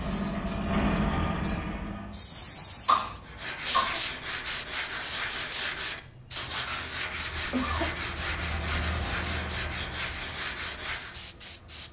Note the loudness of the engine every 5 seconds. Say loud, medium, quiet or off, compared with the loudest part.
loud, medium, quiet.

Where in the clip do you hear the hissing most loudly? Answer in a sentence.
The loudest moment of the hissing is at 4 seconds.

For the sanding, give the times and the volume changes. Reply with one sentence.
The sanding can be heard from 3.2 to 11.2 s, at a steady volume.